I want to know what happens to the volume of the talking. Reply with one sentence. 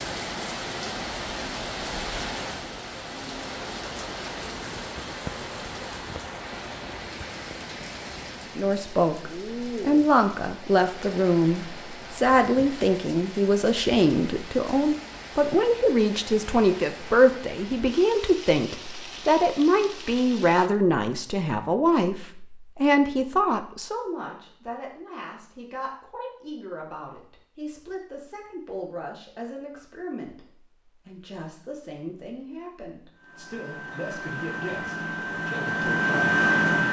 The volume of the talking goes down.